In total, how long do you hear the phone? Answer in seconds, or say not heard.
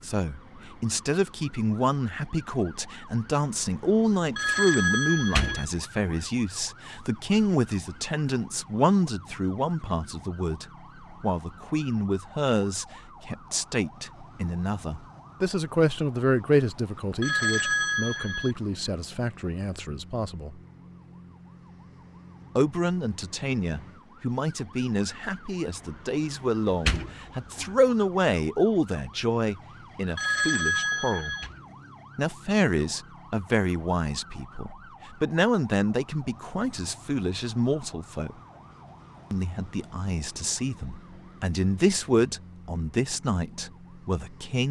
4 s.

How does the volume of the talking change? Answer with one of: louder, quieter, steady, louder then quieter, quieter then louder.
steady.